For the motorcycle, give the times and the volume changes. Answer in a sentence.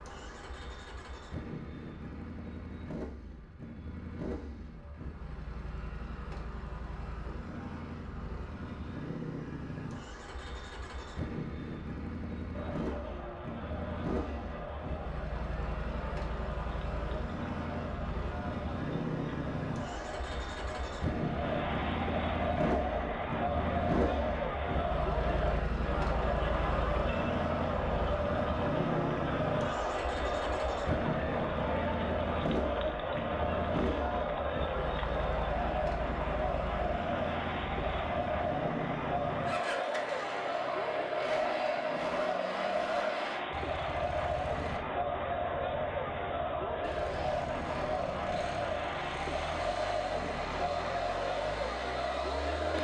You can hear the motorcycle from 0.0 to 52.7 s, getting louder then quieter.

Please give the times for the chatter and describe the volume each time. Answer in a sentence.
The chatter can be heard from 12.5 to 52.7 s, getting louder.